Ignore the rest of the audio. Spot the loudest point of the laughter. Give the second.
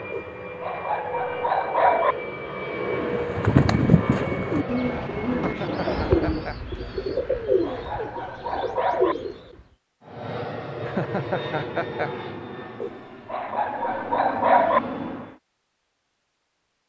11 s.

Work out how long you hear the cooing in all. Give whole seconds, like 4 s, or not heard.
7 s.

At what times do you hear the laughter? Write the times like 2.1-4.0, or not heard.
5.4-6.5, 10.8-12.1.